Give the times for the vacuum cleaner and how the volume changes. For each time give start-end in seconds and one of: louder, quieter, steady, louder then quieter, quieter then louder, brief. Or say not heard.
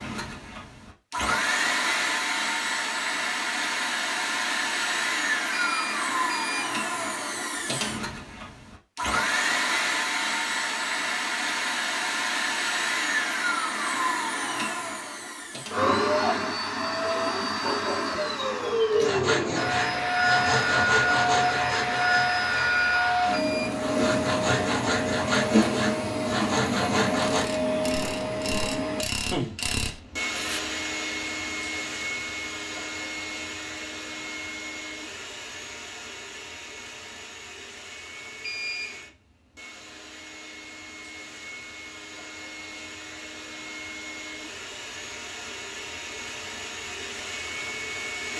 0.0-48.3 quieter.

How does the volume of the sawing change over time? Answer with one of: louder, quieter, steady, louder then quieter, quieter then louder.
quieter then louder.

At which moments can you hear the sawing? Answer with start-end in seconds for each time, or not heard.
19.0-27.4.